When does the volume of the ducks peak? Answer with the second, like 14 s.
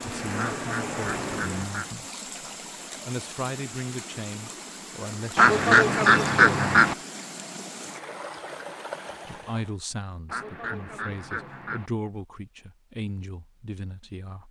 6 s.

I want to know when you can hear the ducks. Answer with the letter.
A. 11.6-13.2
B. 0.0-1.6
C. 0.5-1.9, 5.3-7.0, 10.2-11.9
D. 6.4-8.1
C.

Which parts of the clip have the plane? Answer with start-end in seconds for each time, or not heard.
0.0-1.6.